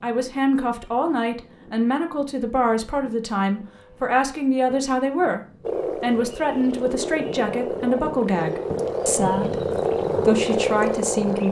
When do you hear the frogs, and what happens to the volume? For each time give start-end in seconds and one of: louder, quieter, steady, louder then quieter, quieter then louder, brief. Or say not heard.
5.6-11.4 louder.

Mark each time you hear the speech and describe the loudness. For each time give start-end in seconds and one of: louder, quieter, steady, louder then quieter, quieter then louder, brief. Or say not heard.
0.0-11.4 steady.